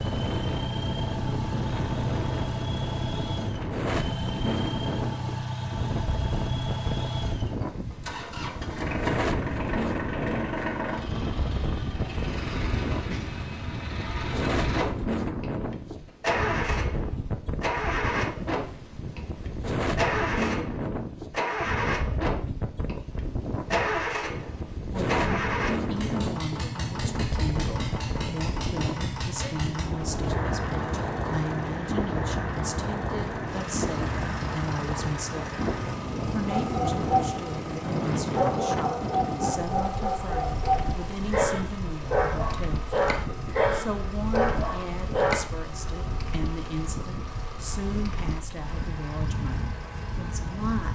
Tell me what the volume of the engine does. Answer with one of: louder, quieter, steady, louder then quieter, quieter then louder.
quieter.